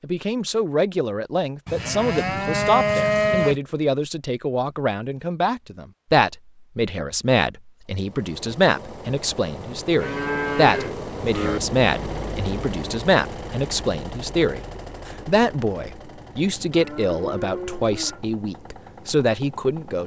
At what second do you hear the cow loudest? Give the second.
3 s.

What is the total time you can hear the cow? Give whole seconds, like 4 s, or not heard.
5 s.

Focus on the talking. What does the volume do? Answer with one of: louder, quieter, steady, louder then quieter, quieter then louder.
steady.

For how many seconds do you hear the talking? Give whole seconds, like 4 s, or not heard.
20 s.